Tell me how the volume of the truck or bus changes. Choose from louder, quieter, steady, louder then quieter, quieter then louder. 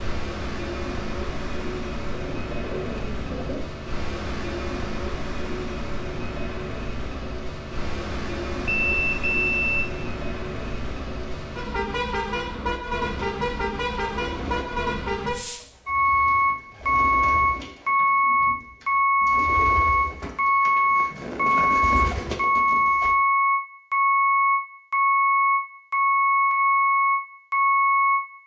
louder.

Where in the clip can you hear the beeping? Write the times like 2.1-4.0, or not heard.
8.7-9.9.